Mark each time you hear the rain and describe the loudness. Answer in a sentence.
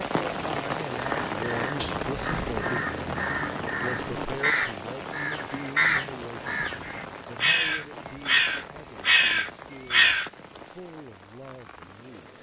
You can hear the rain from 0.0 to 12.3 s, getting quieter.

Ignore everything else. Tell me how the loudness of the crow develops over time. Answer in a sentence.
The volume of the crow goes up.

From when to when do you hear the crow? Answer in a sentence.
The crow can be heard from 1.0 to 10.3 s.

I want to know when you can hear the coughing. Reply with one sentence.
You can hear the coughing from 1.8 to 2.5 s.